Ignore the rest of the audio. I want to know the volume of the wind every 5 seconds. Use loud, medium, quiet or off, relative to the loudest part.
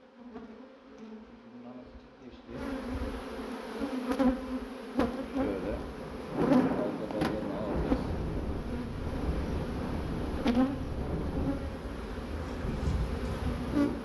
off, loud, loud.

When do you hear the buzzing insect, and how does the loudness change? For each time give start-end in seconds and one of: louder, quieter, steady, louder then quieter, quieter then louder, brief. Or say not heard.
0.0-14.0 louder then quieter.